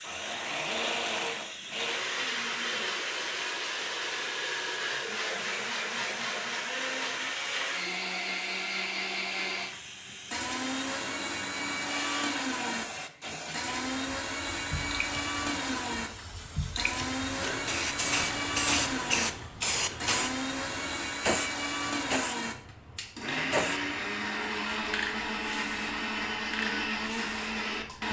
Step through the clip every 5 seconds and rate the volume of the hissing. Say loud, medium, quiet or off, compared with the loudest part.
medium, medium, medium, loud, loud, medium.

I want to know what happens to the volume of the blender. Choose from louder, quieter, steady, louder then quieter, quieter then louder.
steady.